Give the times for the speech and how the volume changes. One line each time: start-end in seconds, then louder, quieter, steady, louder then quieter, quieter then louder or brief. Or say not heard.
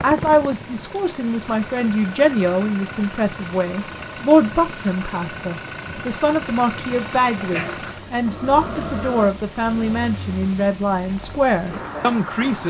0.0-12.6 steady.